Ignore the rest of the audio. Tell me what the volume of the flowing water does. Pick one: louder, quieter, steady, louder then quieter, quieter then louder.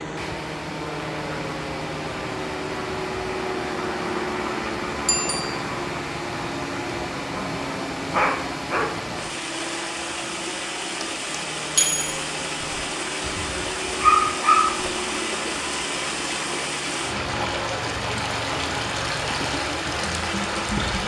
louder.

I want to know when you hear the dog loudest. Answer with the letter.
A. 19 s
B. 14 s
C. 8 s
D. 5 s
B.